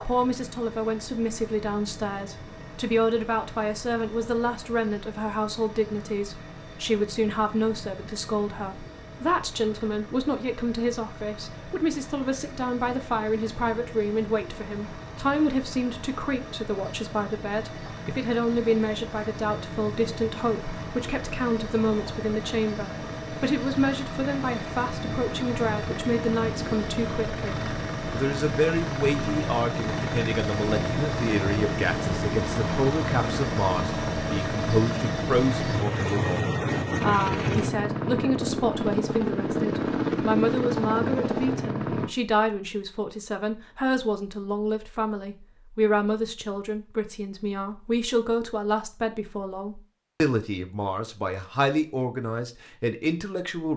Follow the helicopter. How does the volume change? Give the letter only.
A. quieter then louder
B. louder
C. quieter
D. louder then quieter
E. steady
B.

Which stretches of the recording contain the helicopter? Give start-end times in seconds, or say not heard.
0.0-42.1.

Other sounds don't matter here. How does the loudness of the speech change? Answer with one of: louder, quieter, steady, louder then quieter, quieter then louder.
steady.